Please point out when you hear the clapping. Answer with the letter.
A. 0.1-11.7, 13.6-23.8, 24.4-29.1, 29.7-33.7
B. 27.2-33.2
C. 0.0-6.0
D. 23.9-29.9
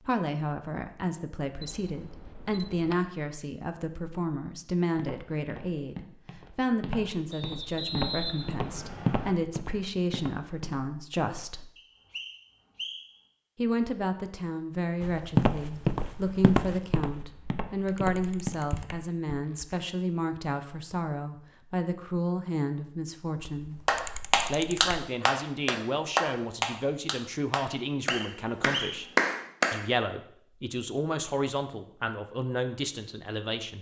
D.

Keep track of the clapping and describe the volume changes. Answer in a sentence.
The loudness of the clapping goes down, then up.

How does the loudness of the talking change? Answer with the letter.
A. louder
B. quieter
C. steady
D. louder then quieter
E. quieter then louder
C.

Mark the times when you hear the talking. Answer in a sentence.
The talking can be heard from 0.1 to 11.7 s, from 13.6 to 23.8 s, from 24.4 to 29.1 s and from 29.7 to 33.7 s.